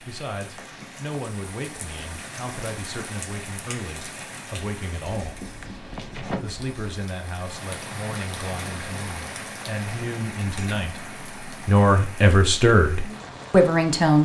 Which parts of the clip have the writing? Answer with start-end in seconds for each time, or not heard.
5.0-7.0.